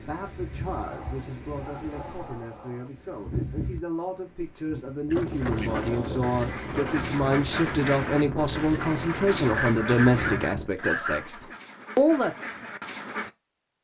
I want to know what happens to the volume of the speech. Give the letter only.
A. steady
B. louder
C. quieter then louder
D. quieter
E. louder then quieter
B.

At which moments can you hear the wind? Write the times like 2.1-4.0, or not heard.
0.0-10.7.